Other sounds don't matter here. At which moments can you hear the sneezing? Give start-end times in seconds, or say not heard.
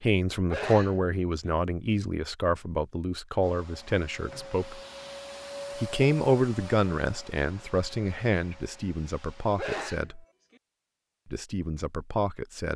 0.5-1.5, 9.6-10.6.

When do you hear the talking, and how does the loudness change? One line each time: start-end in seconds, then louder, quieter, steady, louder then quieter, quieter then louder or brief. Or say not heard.
0.0-4.8 quieter
5.8-10.2 quieter
11.3-12.7 brief.